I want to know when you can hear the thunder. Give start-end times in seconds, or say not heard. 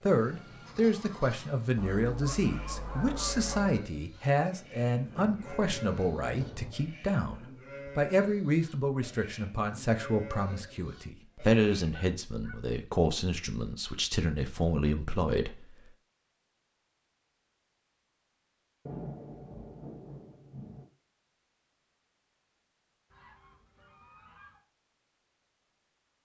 5.0-6.7, 18.9-20.9.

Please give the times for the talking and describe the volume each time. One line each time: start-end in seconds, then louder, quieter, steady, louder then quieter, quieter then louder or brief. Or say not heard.
0.0-15.8 steady.